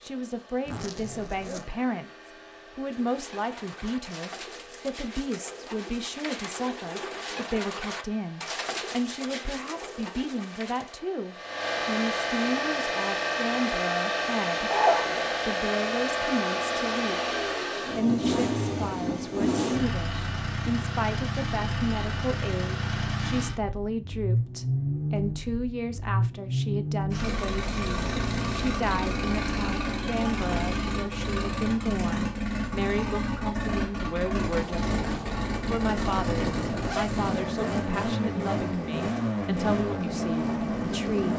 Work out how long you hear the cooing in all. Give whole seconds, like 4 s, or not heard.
8 s.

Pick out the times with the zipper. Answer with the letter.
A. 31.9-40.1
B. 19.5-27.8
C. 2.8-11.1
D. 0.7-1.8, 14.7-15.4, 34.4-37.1
D.